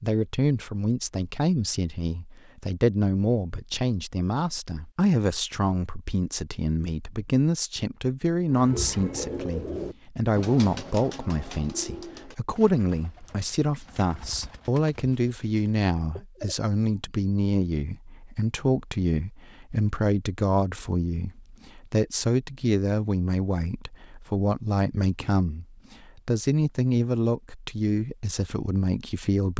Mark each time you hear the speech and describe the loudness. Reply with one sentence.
You can hear the speech from 0.0 to 29.5 s, at a steady volume.